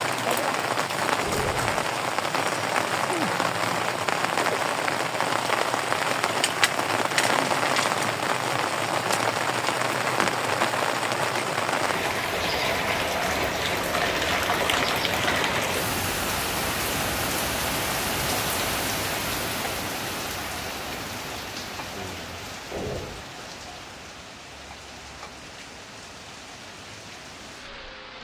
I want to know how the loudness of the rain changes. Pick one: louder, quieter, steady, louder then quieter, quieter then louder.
quieter.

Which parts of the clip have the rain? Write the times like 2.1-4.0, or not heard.
0.0-28.1.